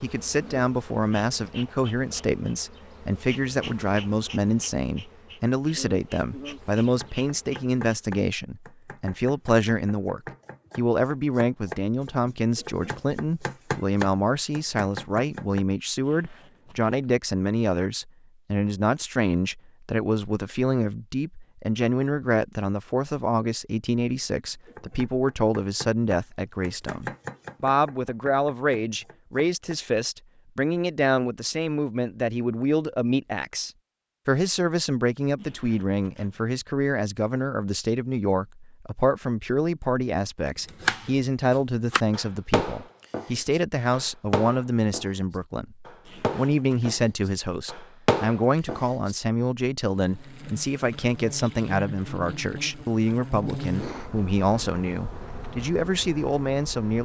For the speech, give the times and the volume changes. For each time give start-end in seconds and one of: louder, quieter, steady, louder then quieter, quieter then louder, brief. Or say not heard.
0.0-57.0 steady.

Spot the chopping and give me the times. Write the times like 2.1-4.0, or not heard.
7.0-15.7, 24.6-29.8, 40.6-49.1.